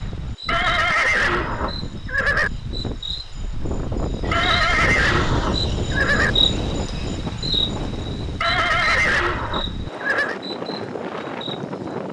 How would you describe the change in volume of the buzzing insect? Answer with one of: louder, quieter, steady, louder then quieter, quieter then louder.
louder then quieter.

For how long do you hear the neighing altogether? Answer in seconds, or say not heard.
6 s.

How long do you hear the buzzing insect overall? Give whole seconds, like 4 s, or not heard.
12 s.